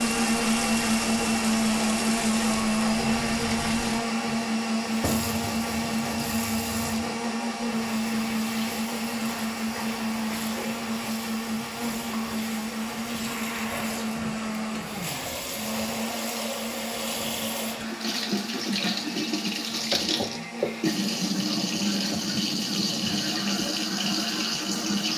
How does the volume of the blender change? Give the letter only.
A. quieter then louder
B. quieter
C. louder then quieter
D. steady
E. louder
B.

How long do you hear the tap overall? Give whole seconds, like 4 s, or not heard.
25 s.